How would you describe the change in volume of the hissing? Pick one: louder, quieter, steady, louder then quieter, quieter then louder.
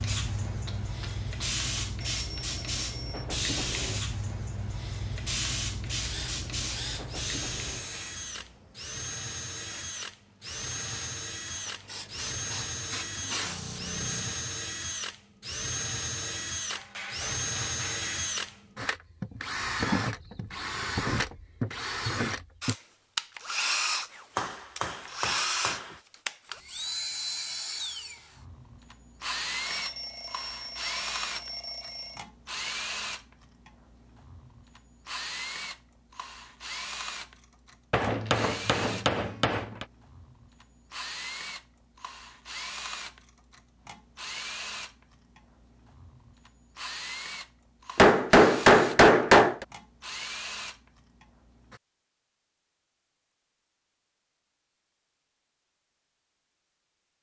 quieter then louder.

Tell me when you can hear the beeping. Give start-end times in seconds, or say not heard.
2.0-3.3, 29.6-32.2.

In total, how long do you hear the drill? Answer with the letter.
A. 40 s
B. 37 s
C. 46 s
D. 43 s
C.